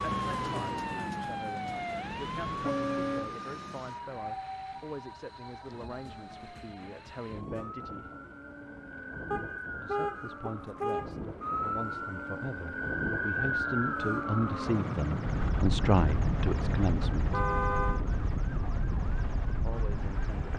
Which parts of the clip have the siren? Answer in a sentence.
The siren can be heard from 0.0 to 20.5 s.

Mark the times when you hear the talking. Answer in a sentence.
The talking can be heard from 0.1 to 8.1 s, from 9.8 to 17.4 s and from 19.6 to 20.5 s.